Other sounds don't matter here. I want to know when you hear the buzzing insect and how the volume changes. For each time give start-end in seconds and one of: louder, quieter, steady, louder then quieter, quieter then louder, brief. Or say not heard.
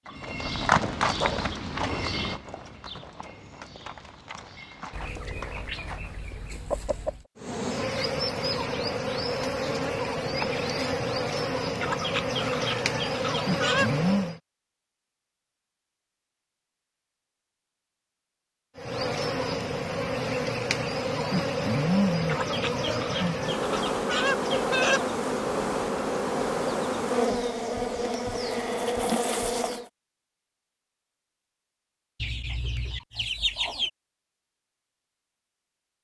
7.3-14.4 steady
18.8-29.9 steady.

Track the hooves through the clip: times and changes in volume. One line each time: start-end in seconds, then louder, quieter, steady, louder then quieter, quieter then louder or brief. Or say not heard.
0.1-6.2 quieter.